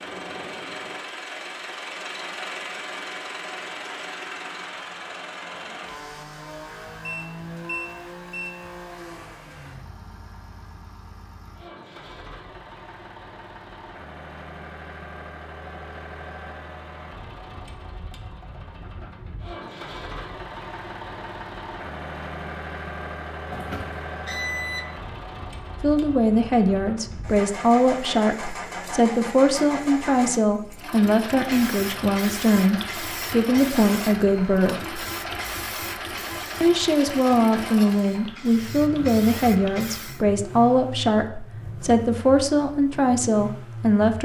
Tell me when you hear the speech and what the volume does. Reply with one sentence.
The speech can be heard from 25.8 to 35.0 s, at a steady volume; and from 36.6 to 44.2 s, at a steady volume.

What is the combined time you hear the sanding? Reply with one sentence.
The sanding can't be heard in this clip.